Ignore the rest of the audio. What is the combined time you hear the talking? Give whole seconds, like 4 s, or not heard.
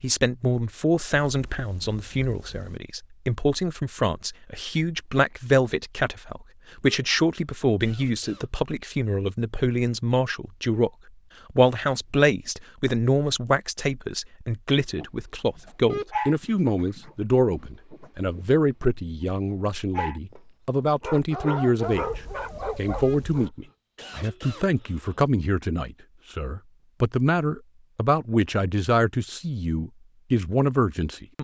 31 s.